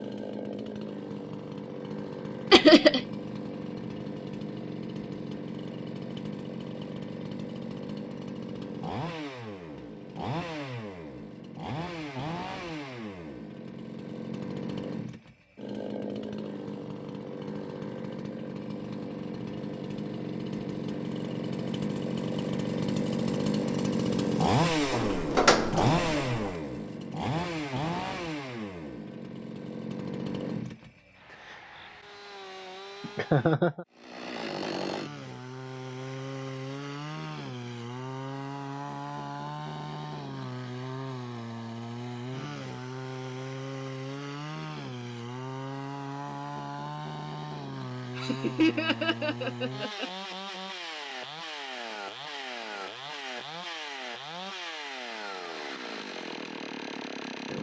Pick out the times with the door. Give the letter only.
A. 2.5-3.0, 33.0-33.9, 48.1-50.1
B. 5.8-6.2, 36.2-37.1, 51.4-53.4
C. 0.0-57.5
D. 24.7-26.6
D.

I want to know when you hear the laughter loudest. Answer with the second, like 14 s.
3 s.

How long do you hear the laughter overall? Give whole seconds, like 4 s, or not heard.
3 s.